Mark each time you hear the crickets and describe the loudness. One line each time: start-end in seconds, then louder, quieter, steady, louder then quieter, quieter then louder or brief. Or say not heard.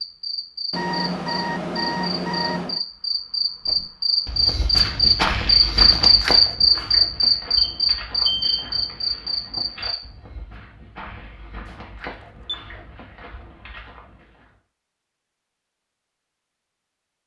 0.0-9.9 louder then quieter.